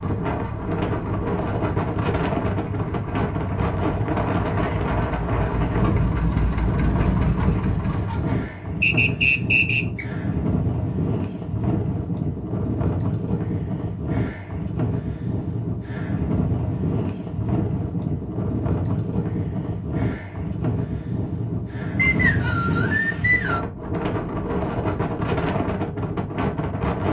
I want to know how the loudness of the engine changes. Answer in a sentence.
The volume of the engine goes up.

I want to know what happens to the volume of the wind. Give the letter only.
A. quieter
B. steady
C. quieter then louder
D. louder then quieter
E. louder
B.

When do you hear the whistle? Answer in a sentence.
You can hear the whistle from 8.8 to 10.1 s and from 21.9 to 23.6 s.